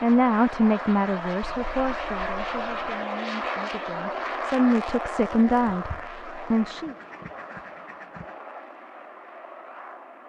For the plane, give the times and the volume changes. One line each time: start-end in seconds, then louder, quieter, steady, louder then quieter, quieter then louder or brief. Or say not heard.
0.0-10.2 quieter.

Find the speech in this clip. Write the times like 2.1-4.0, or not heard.
0.0-7.0.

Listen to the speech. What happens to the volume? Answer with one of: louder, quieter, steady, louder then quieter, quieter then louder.
quieter then louder.